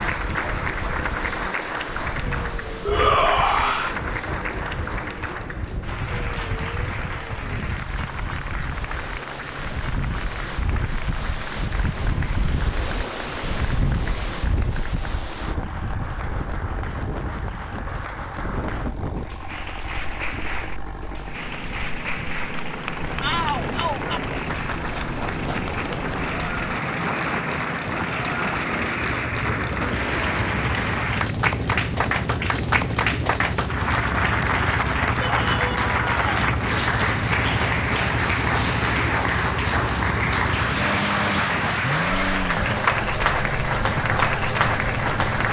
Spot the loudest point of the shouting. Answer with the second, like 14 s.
3 s.